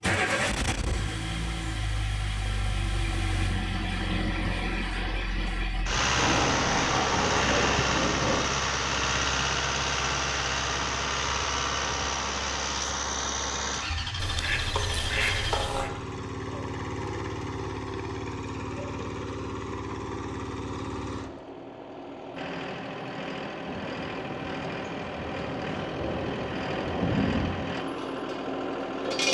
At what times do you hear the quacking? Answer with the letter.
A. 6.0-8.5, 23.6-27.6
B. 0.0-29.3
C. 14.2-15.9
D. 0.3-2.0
C.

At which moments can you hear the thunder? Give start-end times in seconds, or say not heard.
6.0-8.5, 23.6-27.6.